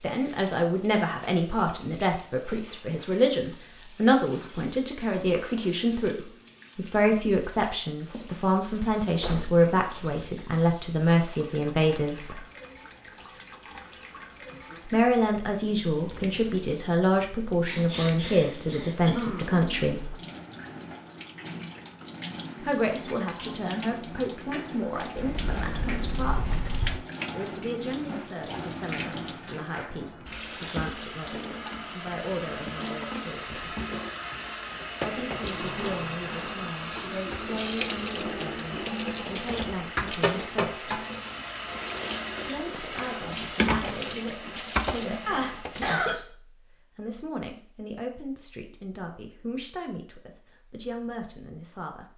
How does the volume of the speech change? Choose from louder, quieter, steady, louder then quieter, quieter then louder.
quieter.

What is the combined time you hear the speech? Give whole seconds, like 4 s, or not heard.
44 s.